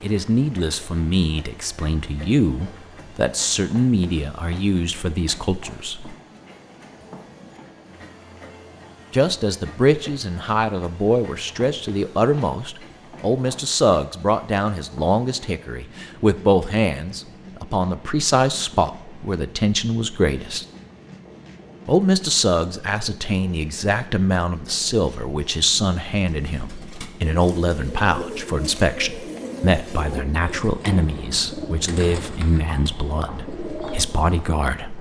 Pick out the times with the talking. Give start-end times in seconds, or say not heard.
0.0-6.2, 9.1-20.6, 21.9-34.9.